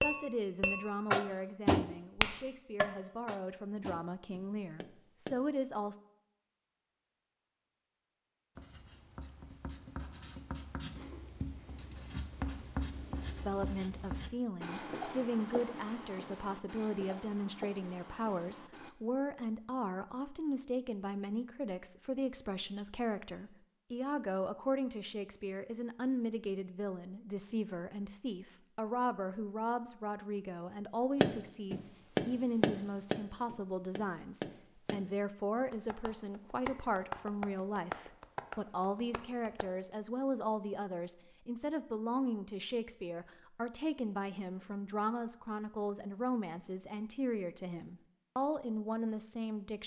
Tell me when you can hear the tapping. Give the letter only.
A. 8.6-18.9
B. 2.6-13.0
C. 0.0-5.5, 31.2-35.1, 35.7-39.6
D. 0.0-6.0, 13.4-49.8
C.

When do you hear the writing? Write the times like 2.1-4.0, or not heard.
8.6-18.9.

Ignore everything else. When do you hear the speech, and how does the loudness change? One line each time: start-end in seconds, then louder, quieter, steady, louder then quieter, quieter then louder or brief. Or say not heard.
0.0-6.0 quieter then louder
13.4-49.8 steady.